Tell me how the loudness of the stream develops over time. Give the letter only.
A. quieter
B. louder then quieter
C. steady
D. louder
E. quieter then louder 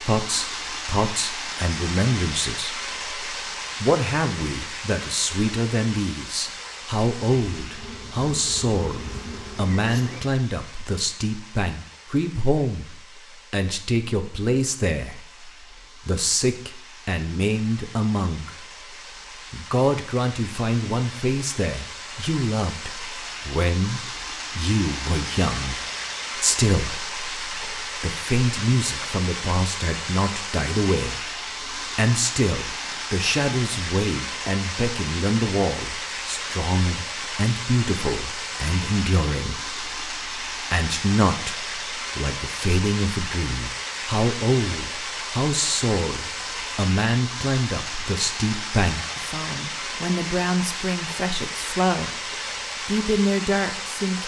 E.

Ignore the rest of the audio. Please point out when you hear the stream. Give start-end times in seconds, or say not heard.
0.0-54.2.